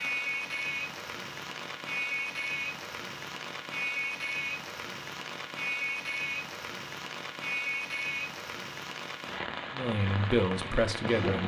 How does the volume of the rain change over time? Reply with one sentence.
The volume of the rain stays about the same.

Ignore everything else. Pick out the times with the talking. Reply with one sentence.
The talking can be heard from 9.7 to 11.4 s.